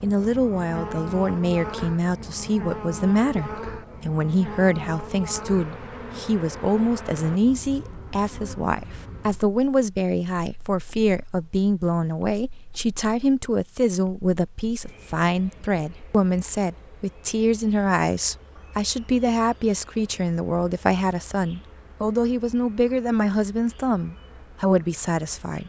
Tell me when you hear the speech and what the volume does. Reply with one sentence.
The speech can be heard from 0.0 to 25.6 s, at a steady volume.